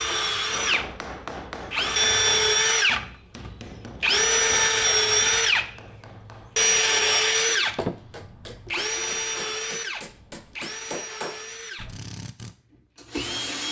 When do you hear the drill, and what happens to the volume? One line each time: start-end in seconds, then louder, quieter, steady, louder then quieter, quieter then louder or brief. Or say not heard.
0.0-13.6 quieter.